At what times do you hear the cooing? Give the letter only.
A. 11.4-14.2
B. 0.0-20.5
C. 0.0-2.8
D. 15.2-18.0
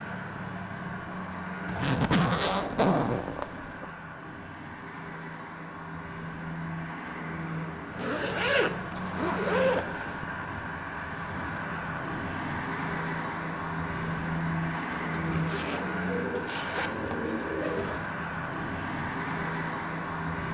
D.